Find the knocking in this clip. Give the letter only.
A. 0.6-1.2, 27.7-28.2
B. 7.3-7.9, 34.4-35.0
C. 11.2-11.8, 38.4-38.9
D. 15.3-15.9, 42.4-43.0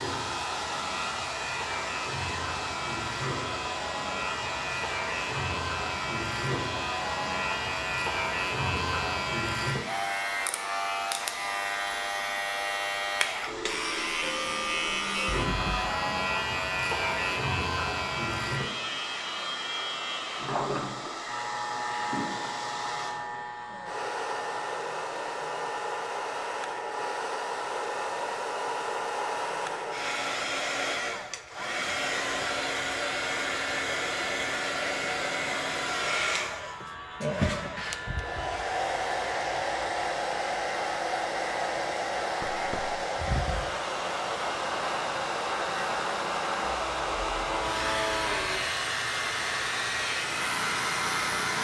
D.